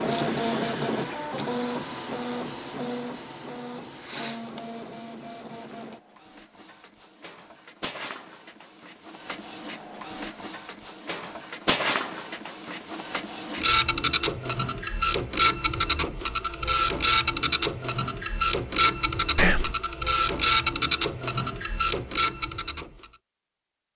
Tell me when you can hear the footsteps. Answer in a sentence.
You can't hear the footsteps here.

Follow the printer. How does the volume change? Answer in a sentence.
The volume of the printer goes down, then up.